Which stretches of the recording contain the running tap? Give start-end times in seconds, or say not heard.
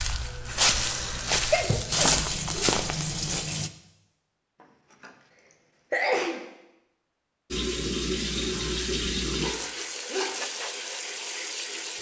0.0-3.7, 7.5-11.9.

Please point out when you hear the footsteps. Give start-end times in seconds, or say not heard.
0.0-3.5.